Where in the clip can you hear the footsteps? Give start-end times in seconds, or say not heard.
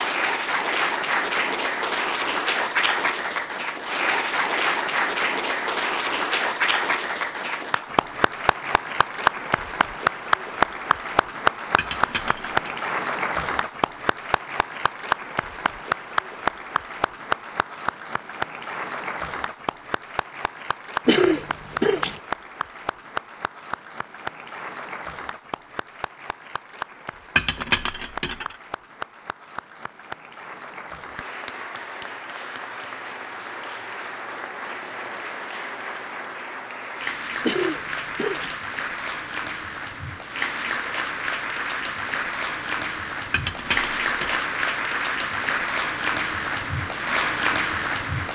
not heard.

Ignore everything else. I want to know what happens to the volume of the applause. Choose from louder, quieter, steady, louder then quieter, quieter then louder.
quieter then louder.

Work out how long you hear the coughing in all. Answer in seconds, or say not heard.
2 s.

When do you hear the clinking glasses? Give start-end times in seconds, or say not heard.
11.8-12.8, 27.4-28.6, 43.3-44.5.